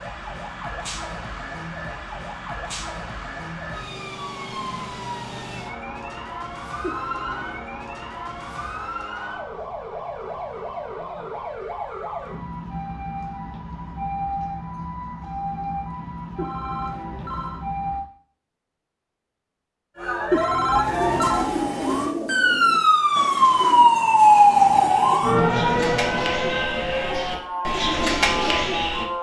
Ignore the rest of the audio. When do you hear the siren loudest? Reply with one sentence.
The loudest moment of the siren is at 24 seconds.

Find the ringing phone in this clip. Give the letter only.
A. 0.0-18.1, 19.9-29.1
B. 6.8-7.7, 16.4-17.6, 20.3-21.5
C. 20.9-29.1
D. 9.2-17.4
B.